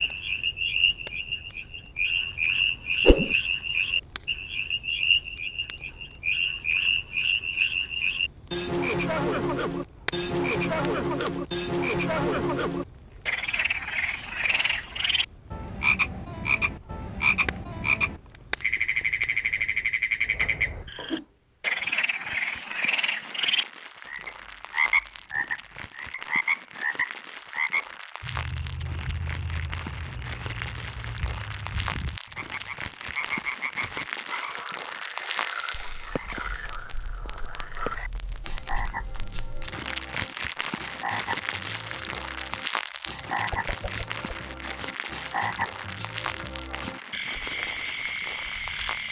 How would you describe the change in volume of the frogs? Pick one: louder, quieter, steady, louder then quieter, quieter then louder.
quieter.